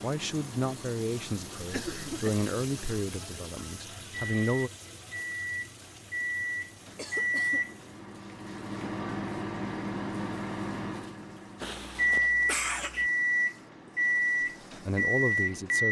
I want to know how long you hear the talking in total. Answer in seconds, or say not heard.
6 s.